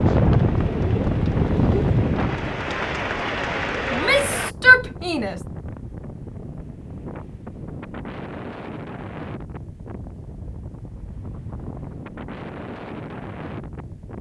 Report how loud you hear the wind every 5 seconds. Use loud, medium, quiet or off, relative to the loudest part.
loud, quiet, quiet.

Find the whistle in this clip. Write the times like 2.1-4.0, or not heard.
not heard.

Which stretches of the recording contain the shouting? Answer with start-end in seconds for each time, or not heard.
3.9-5.4.